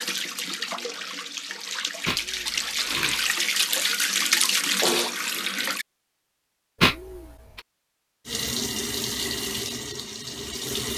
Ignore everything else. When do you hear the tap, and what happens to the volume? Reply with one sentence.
You can hear the tap from 0.0 to 5.8 s, getting louder; and briefly from 8.2 to 10.9 s.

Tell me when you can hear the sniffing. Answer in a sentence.
You can hear the sniffing from 2.0 to 3.4 s and from 6.8 to 7.6 s.